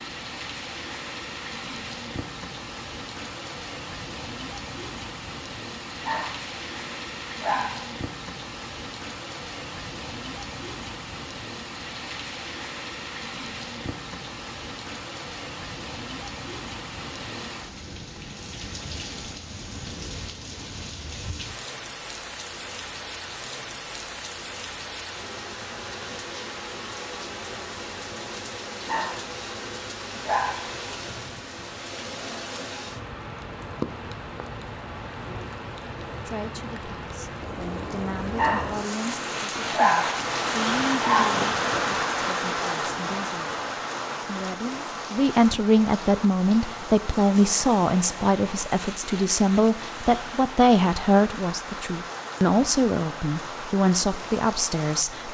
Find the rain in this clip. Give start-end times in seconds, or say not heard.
0.0-55.2.